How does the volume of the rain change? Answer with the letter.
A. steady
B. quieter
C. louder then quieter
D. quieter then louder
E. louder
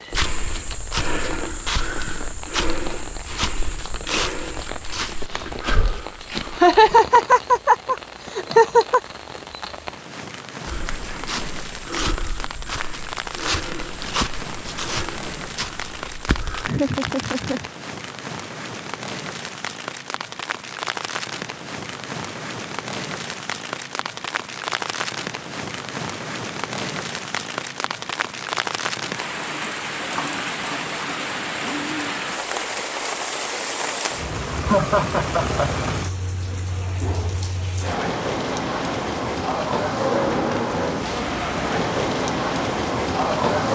E.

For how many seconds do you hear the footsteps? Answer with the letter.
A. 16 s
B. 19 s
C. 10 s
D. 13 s
D.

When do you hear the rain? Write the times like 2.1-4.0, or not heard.
0.0-43.7.